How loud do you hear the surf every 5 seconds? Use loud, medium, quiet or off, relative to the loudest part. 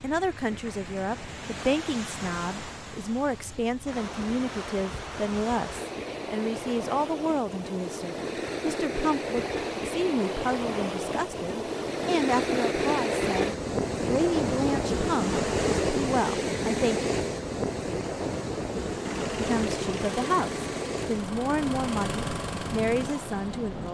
medium, medium, loud, loud, medium.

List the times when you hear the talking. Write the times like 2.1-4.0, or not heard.
0.0-17.1, 19.3-23.9.